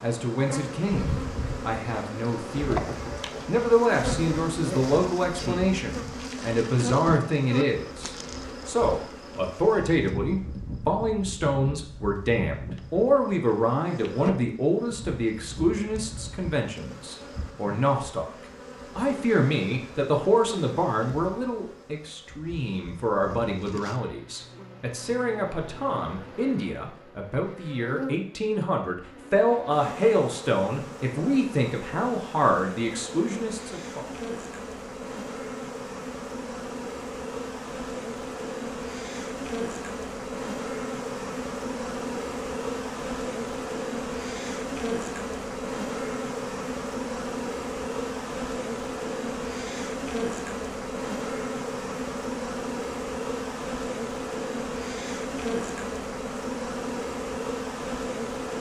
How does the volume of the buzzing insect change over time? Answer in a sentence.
The loudness of the buzzing insect goes down, then up.